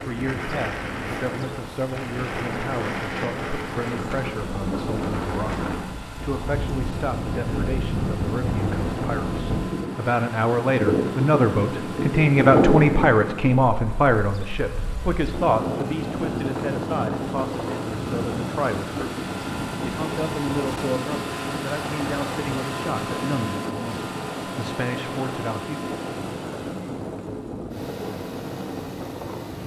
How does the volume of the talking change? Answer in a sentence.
The volume of the talking goes up, then down.